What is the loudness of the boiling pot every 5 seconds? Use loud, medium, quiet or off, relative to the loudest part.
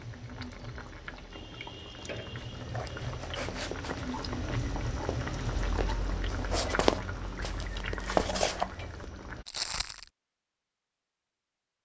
loud, loud, off.